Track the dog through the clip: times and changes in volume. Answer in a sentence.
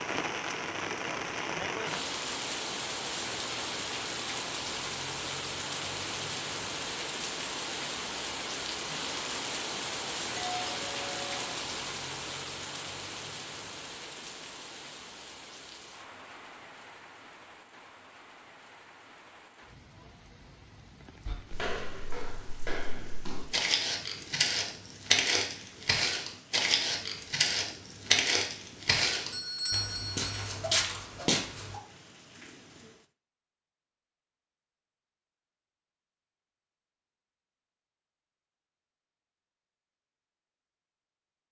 The dog can't be heard in this clip.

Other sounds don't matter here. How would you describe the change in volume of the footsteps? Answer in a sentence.
The loudness of the footsteps goes up.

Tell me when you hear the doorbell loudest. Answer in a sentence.
The volume of the doorbell peaks at 30 seconds.